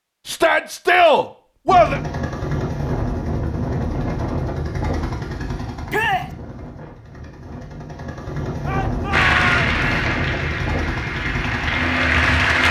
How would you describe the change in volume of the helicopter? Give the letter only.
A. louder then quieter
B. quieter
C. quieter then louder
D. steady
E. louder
C.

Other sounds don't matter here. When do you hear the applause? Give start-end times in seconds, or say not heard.
9.1-12.6.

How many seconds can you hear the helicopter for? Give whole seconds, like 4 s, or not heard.
11 s.